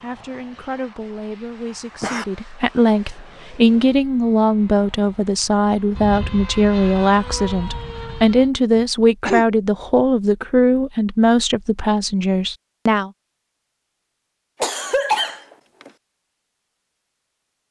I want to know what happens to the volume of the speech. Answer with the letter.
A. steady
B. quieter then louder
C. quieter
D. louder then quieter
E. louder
E.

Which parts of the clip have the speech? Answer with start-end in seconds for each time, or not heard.
0.0-13.1.